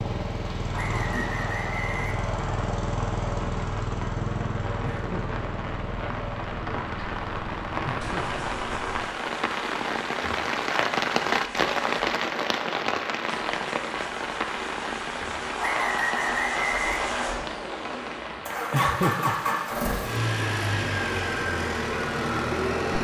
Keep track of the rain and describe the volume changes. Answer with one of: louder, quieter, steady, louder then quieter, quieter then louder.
louder then quieter.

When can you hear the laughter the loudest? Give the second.
19 s.